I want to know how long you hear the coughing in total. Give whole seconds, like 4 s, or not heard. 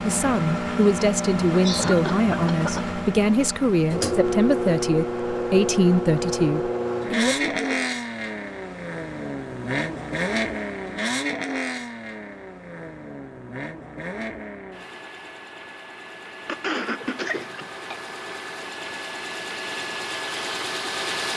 3 s.